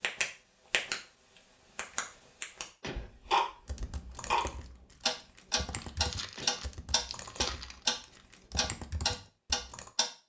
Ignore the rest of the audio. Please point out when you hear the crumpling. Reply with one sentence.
You can hear the crumpling from 5.7 to 8.2 s.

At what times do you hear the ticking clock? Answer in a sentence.
You can hear the ticking clock from 0.0 to 8.0 s and from 8.6 to 10.1 s.